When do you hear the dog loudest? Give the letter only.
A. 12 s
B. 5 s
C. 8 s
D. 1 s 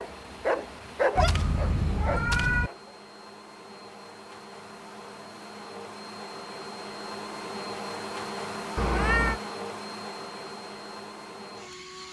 D.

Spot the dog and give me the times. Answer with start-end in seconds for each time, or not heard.
0.0-3.0.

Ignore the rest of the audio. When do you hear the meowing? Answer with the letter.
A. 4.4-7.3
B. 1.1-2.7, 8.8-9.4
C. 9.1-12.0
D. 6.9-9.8
B.